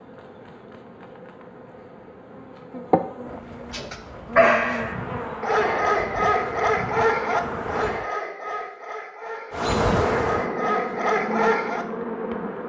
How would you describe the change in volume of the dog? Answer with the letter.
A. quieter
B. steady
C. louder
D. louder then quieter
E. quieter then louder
E.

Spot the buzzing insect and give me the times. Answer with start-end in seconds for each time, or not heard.
0.0-8.1, 9.5-12.6.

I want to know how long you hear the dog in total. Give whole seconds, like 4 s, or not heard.
8 s.